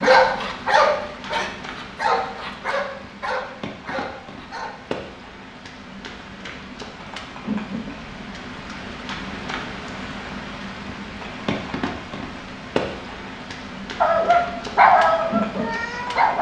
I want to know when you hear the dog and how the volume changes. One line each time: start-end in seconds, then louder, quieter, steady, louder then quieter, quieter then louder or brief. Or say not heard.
0.0-5.0 quieter
14.0-16.3 brief.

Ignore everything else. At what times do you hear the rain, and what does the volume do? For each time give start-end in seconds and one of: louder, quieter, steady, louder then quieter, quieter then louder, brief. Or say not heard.
0.0-16.3 louder.